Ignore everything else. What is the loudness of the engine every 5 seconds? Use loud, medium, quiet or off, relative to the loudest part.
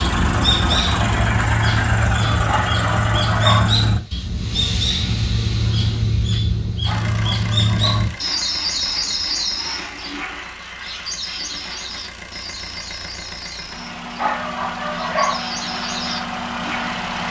loud, medium, medium, loud.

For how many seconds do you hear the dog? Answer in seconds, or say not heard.
4 s.